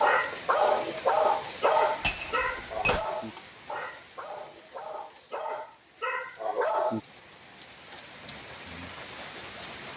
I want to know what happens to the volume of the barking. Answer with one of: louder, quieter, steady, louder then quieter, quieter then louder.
quieter then louder.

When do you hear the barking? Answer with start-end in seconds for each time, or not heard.
0.0-7.0.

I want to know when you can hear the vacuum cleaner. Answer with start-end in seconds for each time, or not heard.
not heard.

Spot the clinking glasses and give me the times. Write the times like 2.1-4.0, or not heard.
2.0-3.0.